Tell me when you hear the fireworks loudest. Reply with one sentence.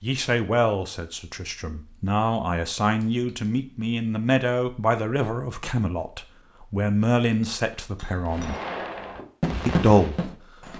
The volume of the fireworks peaks at 10 seconds.